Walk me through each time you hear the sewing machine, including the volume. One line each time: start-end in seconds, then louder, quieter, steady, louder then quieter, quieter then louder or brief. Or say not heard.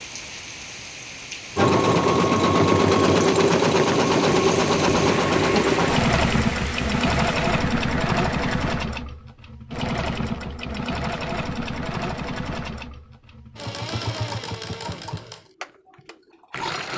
1.6-16.9 quieter.